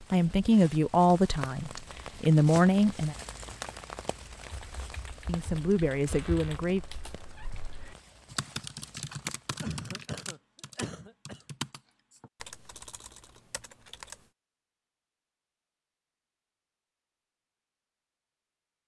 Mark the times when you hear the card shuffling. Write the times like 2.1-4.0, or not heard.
not heard.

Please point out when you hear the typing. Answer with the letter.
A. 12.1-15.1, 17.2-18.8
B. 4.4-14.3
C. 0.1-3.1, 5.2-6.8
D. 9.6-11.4
B.